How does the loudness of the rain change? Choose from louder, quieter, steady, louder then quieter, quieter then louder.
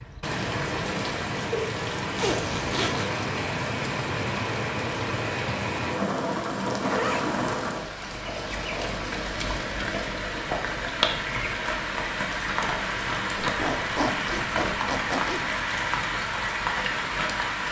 steady.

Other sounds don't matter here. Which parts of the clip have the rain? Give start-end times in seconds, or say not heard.
0.0-17.6.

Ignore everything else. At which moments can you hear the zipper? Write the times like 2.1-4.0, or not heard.
2.1-3.1, 6.8-7.4, 13.3-15.6.